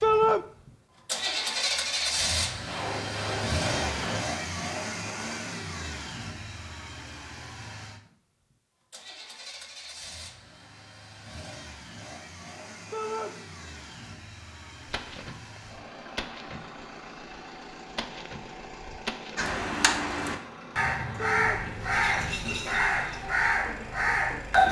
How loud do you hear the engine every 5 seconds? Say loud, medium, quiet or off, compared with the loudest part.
loud, medium, quiet, quiet, quiet.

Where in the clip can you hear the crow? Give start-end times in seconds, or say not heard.
19.4-24.6.